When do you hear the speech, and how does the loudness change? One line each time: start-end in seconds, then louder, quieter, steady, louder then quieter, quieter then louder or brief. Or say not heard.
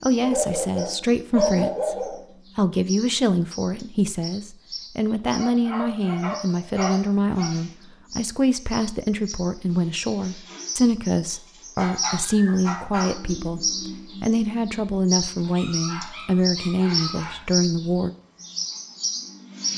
0.0-18.1 steady.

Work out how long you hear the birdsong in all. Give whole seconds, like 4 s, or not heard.
20 s.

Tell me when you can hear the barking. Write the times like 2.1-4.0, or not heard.
0.2-2.2, 5.3-7.5, 11.8-13.1, 15.4-17.4.